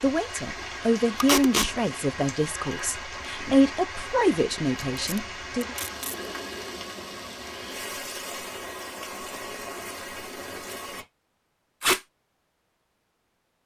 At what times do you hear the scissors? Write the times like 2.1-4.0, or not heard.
not heard.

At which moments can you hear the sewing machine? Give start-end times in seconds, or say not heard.
not heard.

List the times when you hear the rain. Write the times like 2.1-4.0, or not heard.
0.0-11.1.